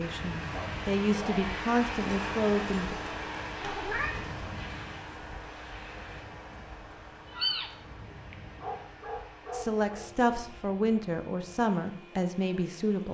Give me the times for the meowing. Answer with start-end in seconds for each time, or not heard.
3.5-4.3, 7.3-7.7.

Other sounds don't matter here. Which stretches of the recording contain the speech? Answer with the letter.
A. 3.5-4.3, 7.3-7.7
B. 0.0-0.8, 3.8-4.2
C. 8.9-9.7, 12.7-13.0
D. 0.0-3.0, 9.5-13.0
D.